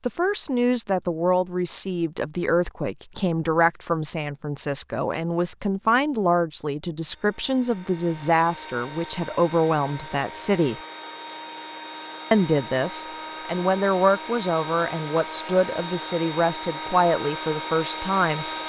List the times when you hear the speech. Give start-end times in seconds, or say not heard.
0.0-10.8, 12.3-18.4.